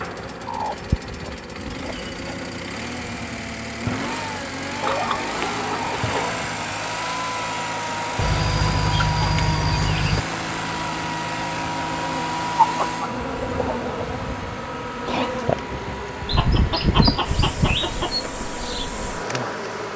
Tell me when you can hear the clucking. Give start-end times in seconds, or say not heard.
0.5-2.4, 4.8-6.3, 8.2-10.2, 12.6-14.2, 16.2-18.2.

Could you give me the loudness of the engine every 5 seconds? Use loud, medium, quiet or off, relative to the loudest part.
medium, loud, loud, medium.